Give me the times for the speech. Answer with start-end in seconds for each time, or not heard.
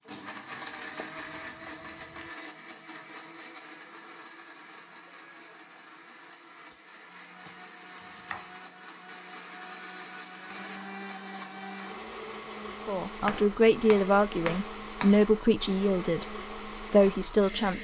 12.8-17.7.